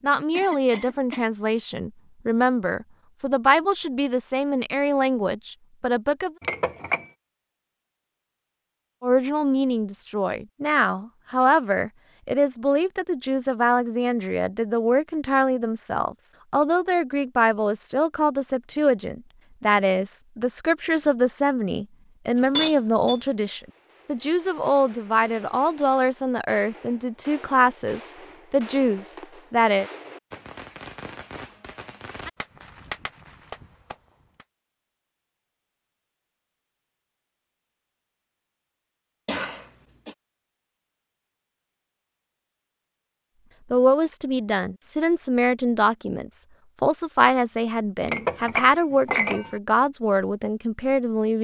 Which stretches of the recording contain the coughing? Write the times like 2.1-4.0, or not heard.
0.3-1.3, 39.2-40.1.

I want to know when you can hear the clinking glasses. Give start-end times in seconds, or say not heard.
6.4-7.0, 22.4-23.2, 48.0-49.5.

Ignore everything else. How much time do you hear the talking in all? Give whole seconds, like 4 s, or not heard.
35 s.